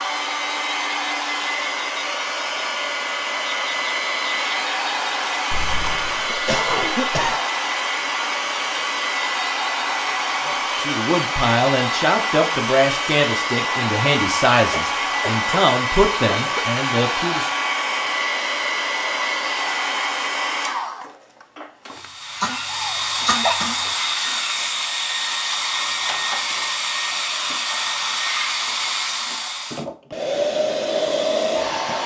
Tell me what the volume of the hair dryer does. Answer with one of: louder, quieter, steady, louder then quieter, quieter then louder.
steady.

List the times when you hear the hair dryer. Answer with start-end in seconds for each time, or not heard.
0.0-32.0.